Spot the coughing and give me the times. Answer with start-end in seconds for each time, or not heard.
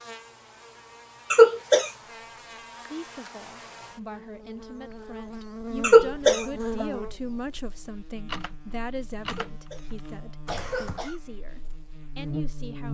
1.3-1.9, 5.8-6.8, 9.2-11.2.